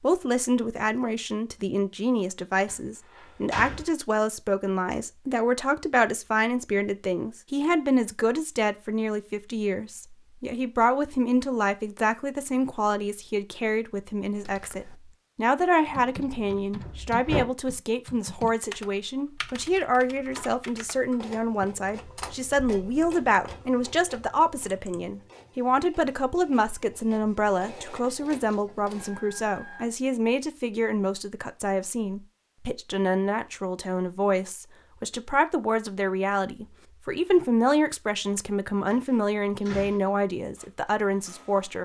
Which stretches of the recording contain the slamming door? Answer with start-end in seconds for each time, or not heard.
2.6-3.9, 16.2-17.4, 38.9-40.0.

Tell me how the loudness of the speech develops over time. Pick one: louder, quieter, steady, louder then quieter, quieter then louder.
steady.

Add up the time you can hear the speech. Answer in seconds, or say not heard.
42 s.